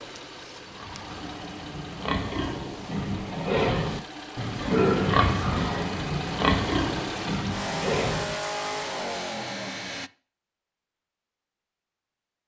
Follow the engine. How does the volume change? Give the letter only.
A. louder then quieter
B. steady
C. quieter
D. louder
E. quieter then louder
D.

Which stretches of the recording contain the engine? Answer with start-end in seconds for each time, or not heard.
0.0-10.1.